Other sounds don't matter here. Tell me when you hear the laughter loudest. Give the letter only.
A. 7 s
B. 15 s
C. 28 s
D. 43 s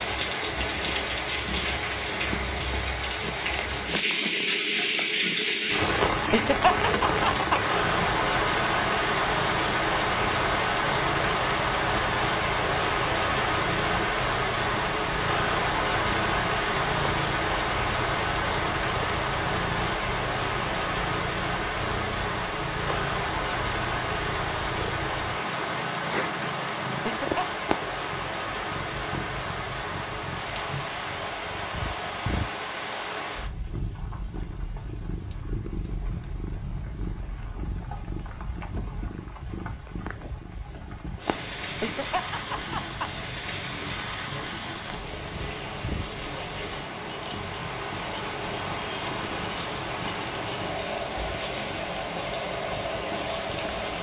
A.